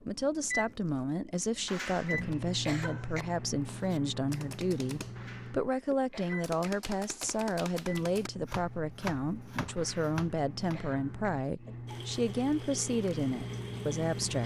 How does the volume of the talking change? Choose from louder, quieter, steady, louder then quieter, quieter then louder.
steady.